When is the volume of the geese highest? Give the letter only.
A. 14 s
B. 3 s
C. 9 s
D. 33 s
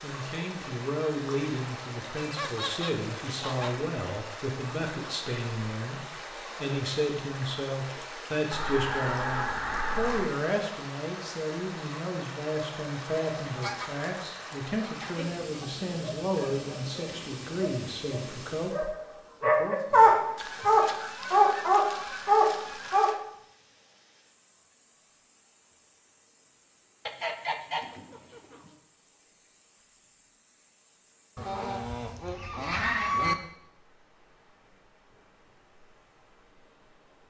D.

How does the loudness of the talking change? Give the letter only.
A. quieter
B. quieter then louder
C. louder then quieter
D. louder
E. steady
E.